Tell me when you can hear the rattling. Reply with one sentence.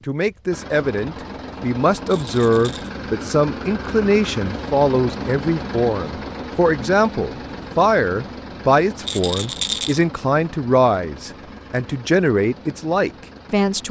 The rattling can be heard from 2.1 to 2.9 s and from 9.1 to 9.9 s.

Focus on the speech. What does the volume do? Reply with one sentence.
The loudness of the speech stays about the same.